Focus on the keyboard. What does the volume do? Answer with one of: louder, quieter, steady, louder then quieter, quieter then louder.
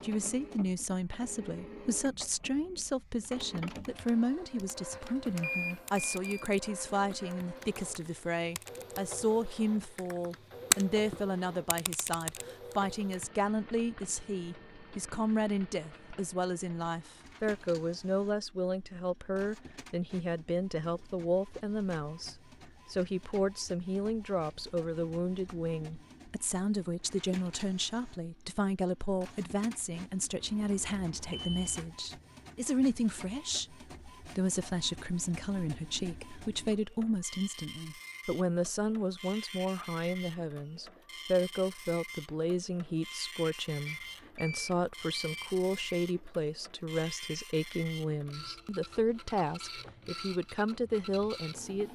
louder then quieter.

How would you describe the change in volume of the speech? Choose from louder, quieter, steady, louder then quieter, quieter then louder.
steady.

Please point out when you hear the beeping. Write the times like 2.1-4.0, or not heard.
5.4-6.5, 30.4-31.9, 43.9-46.0.